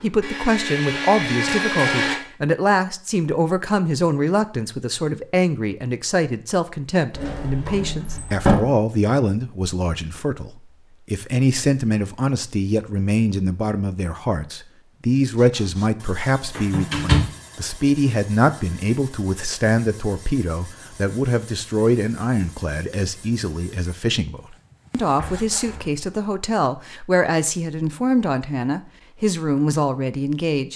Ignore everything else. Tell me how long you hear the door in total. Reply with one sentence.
The door can be heard for 3 seconds in total.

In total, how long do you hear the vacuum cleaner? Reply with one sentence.
The vacuum cleaner can be heard for 2 seconds in total.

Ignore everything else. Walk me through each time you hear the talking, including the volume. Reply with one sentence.
The talking can be heard from 0.0 to 30.7 s, at a steady volume.